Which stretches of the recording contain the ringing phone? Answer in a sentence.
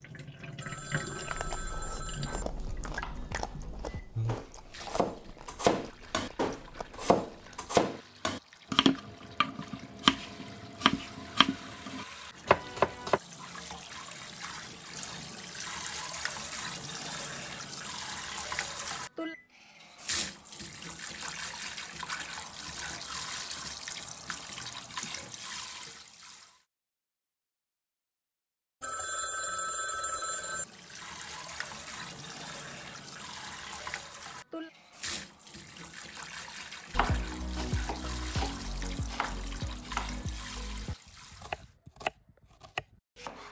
The ringing phone can be heard from 0.6 to 2.5 s and from 28.8 to 30.6 s.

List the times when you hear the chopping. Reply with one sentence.
The chopping can be heard from 2.2 to 13.2 s and from 37.0 to 43.4 s.